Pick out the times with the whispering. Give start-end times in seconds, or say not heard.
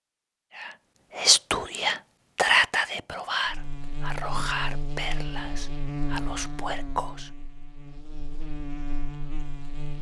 0.6-7.3.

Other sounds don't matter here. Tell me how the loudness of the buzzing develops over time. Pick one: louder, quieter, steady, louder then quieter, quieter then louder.
quieter then louder.